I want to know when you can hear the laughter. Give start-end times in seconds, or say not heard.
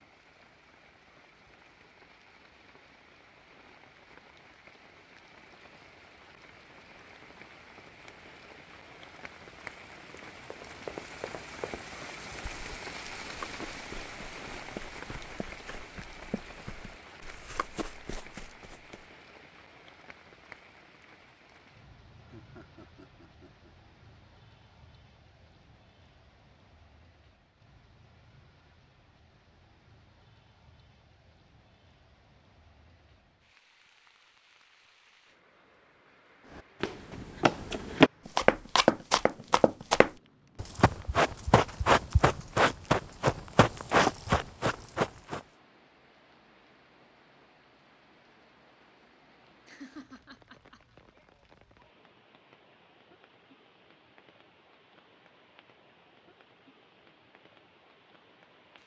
22.2-23.7, 49.6-50.8.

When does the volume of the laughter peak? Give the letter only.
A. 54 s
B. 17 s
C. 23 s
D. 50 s
D.